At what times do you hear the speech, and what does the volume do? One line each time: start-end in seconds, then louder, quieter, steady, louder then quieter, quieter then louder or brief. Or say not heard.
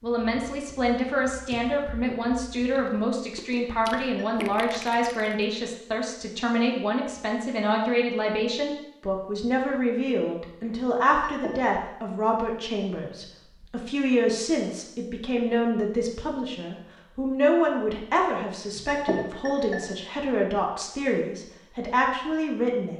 0.0-22.9 steady.